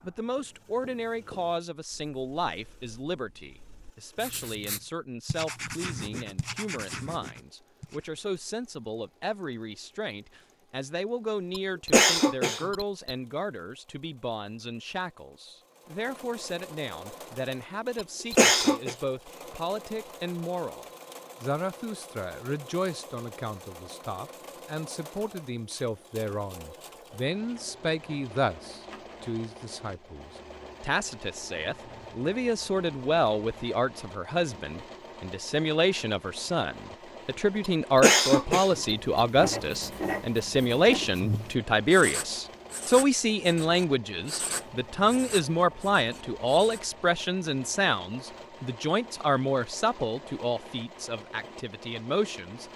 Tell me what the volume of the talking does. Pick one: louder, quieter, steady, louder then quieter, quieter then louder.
louder.